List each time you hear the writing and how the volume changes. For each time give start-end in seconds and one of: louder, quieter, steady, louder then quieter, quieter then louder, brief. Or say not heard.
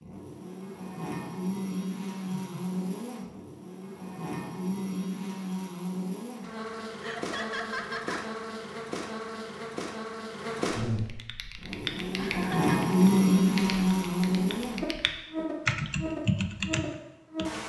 not heard.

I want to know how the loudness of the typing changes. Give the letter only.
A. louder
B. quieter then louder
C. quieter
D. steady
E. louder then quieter
B.